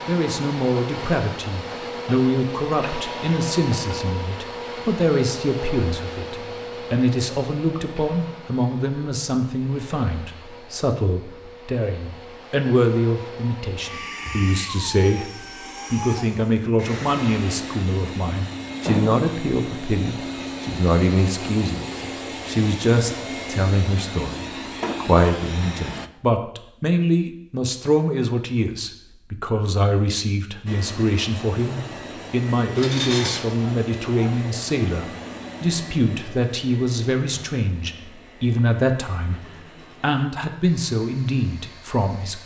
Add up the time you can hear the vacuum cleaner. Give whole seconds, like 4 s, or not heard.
38 s.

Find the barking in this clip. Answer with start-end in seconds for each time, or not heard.
32.8-34.4.